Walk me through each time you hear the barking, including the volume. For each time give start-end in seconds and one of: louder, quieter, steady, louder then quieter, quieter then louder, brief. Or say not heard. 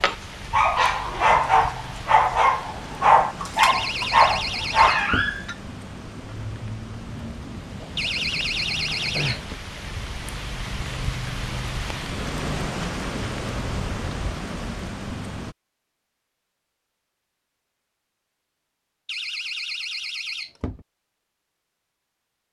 0.0-5.5 steady.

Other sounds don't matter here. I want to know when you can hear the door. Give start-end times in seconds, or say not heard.
3.5-5.3, 8.0-9.6, 19.1-20.9.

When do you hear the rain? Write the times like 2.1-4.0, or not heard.
0.0-15.6.